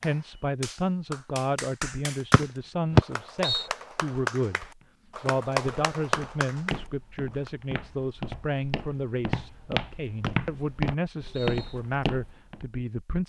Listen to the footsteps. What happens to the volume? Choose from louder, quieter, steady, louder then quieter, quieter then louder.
louder.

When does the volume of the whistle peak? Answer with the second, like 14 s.
3 s.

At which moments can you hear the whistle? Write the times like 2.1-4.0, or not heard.
2.3-3.6, 10.2-11.8.